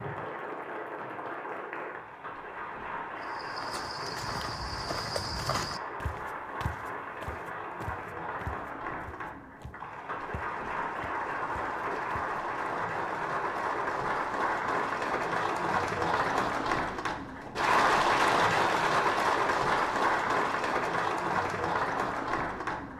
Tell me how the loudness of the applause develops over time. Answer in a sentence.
The volume of the applause goes up.